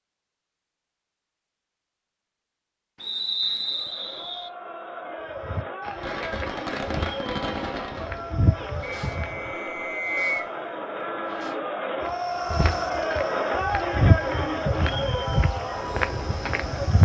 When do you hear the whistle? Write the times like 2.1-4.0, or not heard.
3.0-4.5, 9.1-10.5.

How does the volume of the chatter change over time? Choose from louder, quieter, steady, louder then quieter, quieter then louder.
louder.